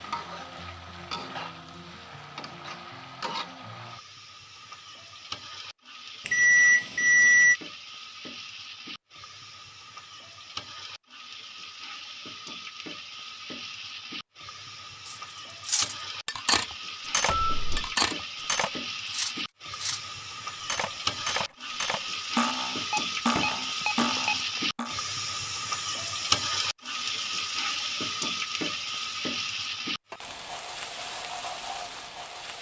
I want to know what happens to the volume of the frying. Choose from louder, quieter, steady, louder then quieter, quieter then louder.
louder.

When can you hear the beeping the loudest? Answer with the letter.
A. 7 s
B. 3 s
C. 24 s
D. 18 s
A.